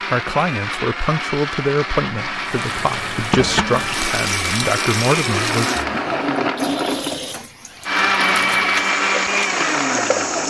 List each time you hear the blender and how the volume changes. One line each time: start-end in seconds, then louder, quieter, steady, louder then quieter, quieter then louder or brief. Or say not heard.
0.0-10.4 louder.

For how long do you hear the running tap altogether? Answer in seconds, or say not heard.
8 s.